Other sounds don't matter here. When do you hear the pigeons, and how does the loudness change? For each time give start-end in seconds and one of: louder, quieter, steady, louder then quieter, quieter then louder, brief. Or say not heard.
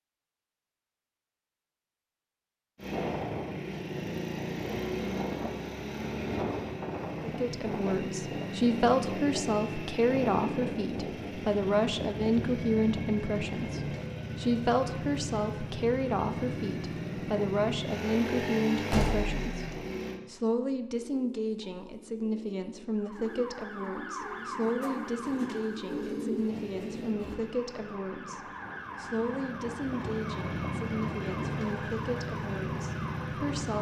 20.9-27.4 louder.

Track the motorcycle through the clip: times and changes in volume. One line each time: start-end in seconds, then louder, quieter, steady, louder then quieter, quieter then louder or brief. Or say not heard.
2.8-20.2 steady
26.4-33.7 louder.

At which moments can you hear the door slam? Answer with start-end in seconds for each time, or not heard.
18.9-19.9.